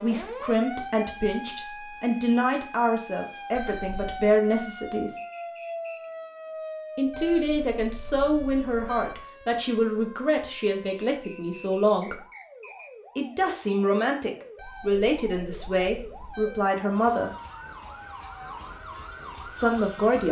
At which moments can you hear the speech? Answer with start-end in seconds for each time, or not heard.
0.0-5.2, 7.0-12.2, 13.2-17.3, 19.5-20.2.